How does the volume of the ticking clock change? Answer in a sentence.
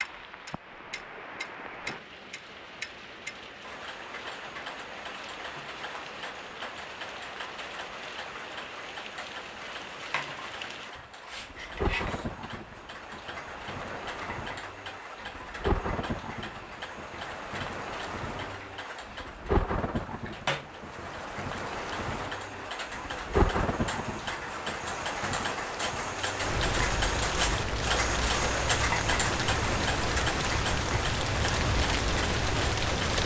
The volume of the ticking clock goes up.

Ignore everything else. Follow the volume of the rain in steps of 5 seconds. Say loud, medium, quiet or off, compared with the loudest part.
quiet, quiet, medium, medium, medium, loud, loud.